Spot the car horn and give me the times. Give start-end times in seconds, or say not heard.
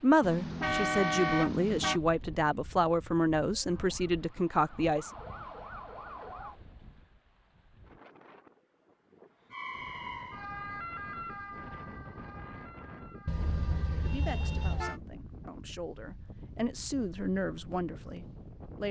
0.2-2.0, 13.2-15.0.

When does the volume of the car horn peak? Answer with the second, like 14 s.
1 s.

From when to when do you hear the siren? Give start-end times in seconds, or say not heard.
3.5-6.6, 9.5-15.0.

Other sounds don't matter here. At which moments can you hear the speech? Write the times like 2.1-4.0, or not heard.
0.0-5.1, 13.9-18.8.